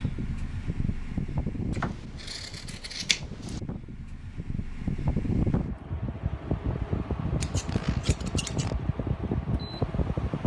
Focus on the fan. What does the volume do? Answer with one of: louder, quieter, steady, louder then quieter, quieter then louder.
quieter then louder.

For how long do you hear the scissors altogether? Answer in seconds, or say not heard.
3 s.